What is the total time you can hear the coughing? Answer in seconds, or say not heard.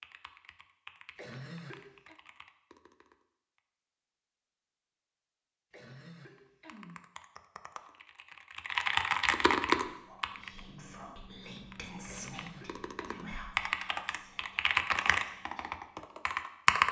4 s.